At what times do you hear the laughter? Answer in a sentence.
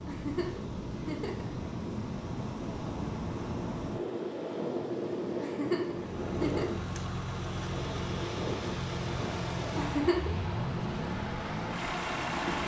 You can hear the laughter from 0.1 to 1.5 s, from 5.4 to 6.7 s and from 9.8 to 10.3 s.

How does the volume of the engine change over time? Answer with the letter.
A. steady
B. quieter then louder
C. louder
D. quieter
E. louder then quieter
A.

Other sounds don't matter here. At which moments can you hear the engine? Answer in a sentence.
You can hear the engine from 5.9 to 12.6 s.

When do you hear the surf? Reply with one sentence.
You can hear the surf from 0.0 to 12.6 s.